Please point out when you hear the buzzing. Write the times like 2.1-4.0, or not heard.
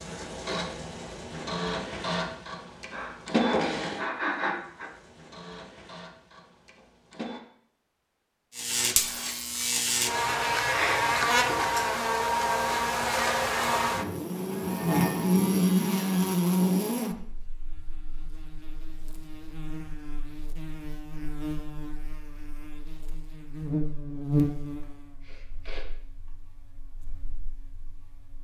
8.6-28.3.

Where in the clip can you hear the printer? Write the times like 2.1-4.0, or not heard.
0.0-7.4.